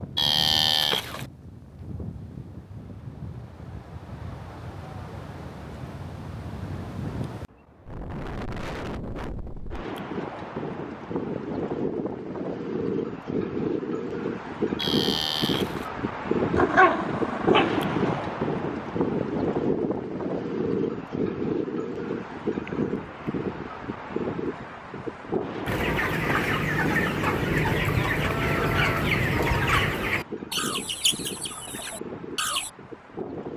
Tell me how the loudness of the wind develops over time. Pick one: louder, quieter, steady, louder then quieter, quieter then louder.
louder then quieter.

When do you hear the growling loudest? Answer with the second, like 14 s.
17 s.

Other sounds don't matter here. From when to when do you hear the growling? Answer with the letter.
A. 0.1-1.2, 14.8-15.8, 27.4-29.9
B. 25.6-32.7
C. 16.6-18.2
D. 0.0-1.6
C.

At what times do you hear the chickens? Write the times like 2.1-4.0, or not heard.
25.6-32.7.